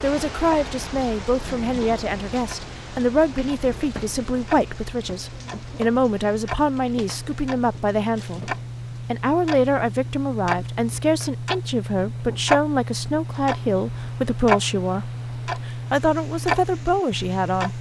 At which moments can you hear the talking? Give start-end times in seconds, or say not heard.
0.0-17.7.